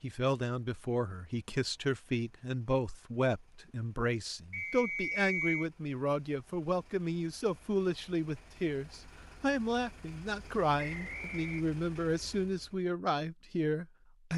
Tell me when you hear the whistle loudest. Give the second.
5 s.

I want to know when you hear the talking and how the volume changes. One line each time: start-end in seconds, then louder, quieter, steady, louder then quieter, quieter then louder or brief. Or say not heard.
0.0-14.3 steady.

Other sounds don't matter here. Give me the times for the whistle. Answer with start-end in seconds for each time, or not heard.
4.5-5.7, 10.8-11.7.